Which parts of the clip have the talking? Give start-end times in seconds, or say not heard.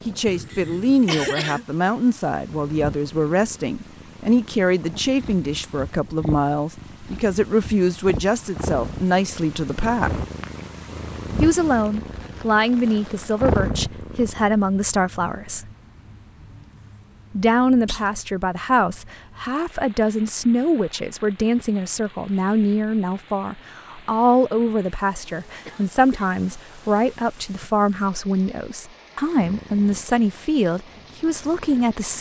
0.1-10.2, 11.4-15.7, 17.4-32.1.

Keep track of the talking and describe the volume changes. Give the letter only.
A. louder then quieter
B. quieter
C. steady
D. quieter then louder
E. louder
C.